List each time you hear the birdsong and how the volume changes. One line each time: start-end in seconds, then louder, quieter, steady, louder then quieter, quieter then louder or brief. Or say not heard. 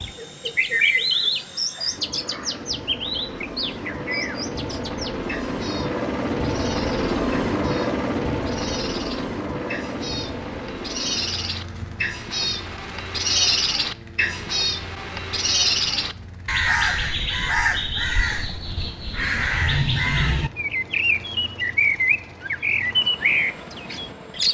0.0-24.4 quieter then louder.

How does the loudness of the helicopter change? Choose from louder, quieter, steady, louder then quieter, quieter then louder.
louder then quieter.